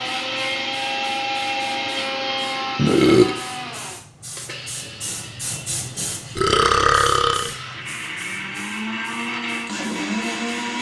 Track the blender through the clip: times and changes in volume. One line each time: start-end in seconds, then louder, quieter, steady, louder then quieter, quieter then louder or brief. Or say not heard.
0.0-10.7 quieter then louder.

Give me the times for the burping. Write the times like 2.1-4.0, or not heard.
2.8-3.4, 6.3-7.5.